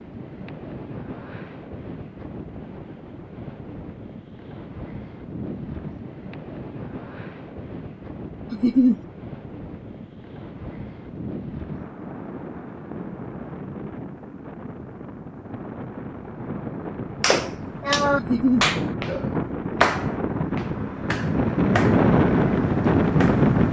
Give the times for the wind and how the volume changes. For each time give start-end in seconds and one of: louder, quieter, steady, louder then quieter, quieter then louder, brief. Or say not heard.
0.0-23.6 louder.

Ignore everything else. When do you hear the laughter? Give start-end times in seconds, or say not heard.
8.5-8.9, 18.1-18.6.